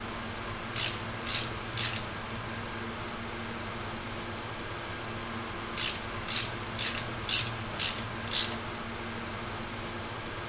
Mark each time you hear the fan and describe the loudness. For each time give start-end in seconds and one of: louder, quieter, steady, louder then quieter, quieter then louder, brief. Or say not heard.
0.0-10.4 steady.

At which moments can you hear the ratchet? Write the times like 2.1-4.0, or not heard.
0.8-2.1, 5.8-8.7.